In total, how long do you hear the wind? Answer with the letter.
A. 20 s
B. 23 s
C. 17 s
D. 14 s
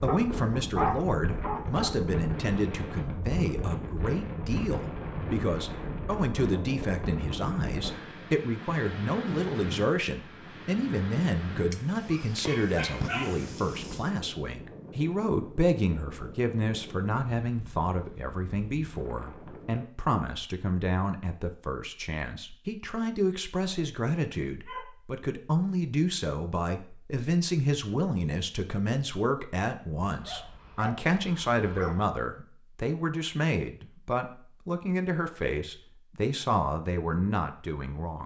A.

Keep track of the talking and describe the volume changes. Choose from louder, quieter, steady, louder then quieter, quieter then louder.
steady.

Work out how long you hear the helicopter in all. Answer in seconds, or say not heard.
not heard.